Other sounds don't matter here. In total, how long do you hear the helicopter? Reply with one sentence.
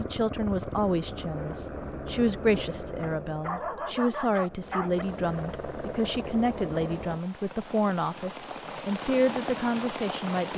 You can hear the helicopter for 7 seconds altogether.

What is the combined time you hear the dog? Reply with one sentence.
The dog can be heard for 2 seconds in total.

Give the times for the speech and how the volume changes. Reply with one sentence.
The speech can be heard from 0.0 to 10.5 s, at a steady volume.